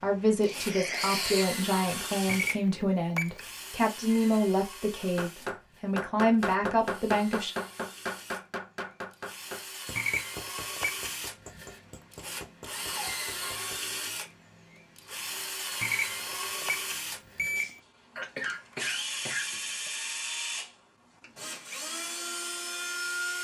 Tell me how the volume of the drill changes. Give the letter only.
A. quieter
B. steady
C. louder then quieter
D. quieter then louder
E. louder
D.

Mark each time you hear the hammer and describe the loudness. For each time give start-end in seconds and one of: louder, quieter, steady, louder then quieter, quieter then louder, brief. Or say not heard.
5.0-13.8 quieter.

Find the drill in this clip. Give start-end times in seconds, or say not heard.
0.0-23.3.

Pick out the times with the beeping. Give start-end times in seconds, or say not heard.
2.2-3.5, 9.9-11.1, 15.8-17.8.